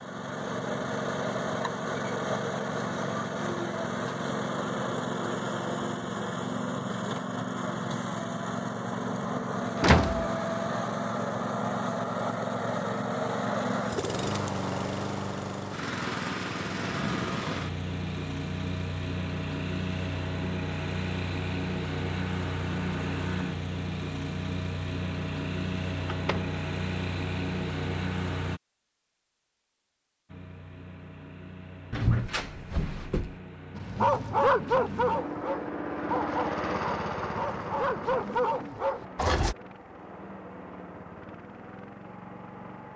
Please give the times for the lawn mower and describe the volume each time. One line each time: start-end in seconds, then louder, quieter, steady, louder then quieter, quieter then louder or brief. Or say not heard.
0.0-28.6 steady
30.2-42.9 louder then quieter.